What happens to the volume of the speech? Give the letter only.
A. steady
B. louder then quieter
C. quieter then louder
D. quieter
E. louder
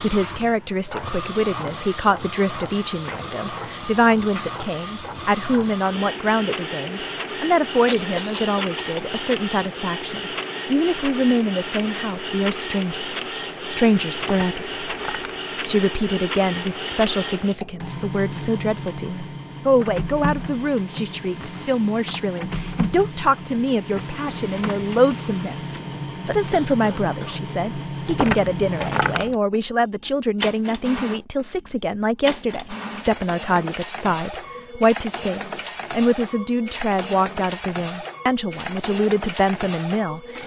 A.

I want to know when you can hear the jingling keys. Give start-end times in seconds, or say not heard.
14.2-15.4, 28.1-29.4.